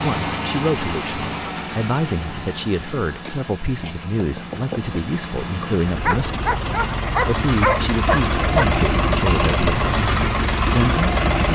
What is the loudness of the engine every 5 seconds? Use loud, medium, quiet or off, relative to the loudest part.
medium, loud, loud.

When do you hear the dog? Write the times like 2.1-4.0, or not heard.
6.0-8.7.